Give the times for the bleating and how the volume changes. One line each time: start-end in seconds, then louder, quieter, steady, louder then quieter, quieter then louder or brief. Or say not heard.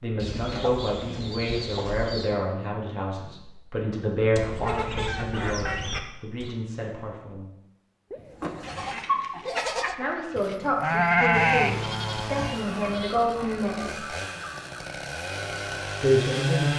8.1-13.6 louder then quieter.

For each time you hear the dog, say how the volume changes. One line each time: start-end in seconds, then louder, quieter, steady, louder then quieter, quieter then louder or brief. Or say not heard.
not heard.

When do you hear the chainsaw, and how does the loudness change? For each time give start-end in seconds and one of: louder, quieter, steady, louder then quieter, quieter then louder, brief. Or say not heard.
11.3-16.7 quieter then louder.